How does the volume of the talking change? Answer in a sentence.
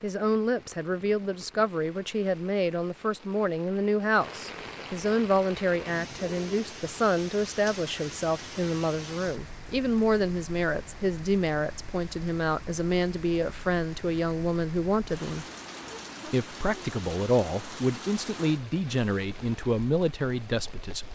The volume of the talking stays about the same.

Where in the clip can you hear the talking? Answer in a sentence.
You can hear the talking from 0.0 to 15.4 s and from 16.2 to 21.1 s.